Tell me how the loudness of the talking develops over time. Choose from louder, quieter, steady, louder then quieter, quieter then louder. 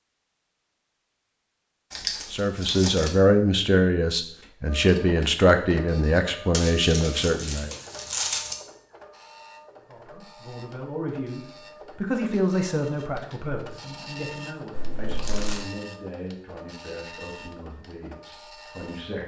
quieter.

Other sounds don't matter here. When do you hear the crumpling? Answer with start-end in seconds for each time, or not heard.
1.9-3.1, 6.5-8.6, 14.8-15.7.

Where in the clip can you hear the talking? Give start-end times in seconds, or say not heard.
2.3-7.7, 9.8-19.2.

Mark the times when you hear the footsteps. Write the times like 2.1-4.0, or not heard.
not heard.